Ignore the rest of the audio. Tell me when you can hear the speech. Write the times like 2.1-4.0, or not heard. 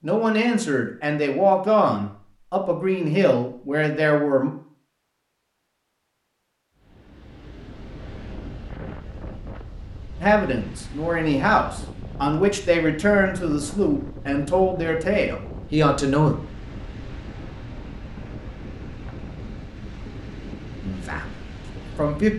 0.0-4.5, 10.2-16.4, 20.8-22.3.